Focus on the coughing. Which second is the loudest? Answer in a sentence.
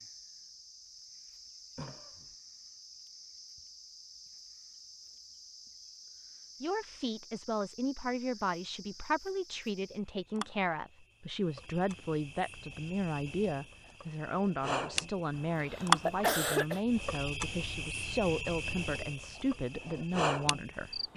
The loudest moment of the coughing is at 16 seconds.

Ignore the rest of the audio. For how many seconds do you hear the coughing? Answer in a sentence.
The coughing can be heard for 2 seconds in total.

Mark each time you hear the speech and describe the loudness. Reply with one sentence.
You can hear the speech from 6.6 to 21.1 s, at a steady volume.